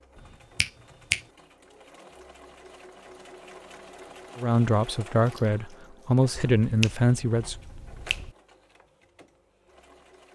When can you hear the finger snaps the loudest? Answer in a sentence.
The loudest moment of the finger snaps is at 1 second.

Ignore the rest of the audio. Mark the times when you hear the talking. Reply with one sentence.
You can hear the talking from 4.3 to 7.5 s.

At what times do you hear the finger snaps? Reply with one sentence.
You can hear the finger snaps from 0.1 to 1.2 s and from 6.3 to 8.3 s.